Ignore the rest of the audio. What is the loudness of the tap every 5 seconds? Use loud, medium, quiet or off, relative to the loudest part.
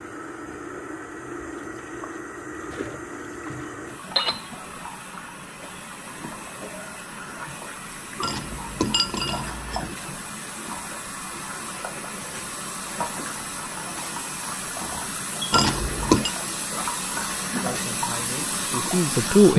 medium, medium, medium, loud.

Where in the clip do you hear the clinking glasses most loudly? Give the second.
16 s.